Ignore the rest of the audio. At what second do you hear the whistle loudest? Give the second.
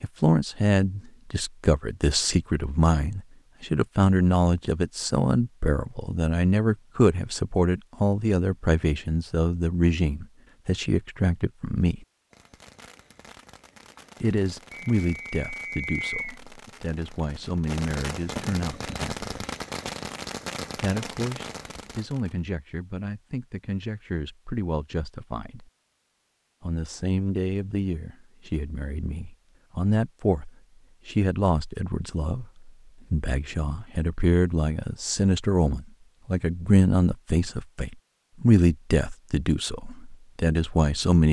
16 s.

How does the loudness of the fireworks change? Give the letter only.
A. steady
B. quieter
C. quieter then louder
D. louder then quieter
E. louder
E.